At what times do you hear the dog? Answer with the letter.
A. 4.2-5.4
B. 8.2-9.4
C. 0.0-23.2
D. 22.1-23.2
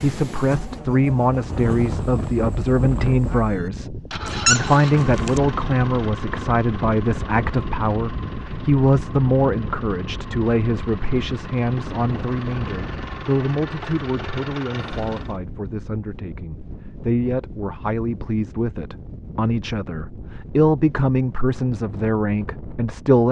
A.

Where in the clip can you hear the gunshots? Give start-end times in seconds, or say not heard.
not heard.